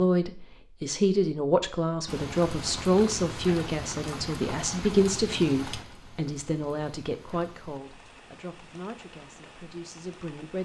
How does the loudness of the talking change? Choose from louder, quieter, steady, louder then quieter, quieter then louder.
quieter.